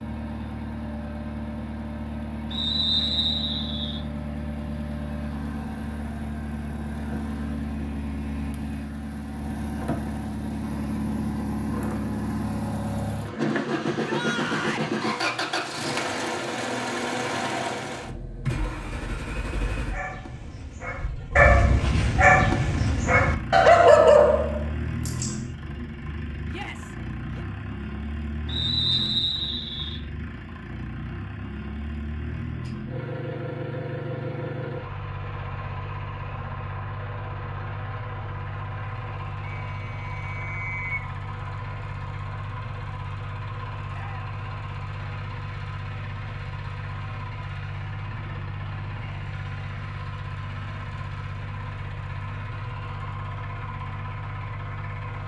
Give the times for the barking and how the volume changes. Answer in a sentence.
You can hear the barking from 19.8 to 25.4 s, getting louder.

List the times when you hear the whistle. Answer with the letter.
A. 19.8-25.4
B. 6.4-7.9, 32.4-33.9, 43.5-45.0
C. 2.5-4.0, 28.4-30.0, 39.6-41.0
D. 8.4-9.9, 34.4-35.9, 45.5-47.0
C.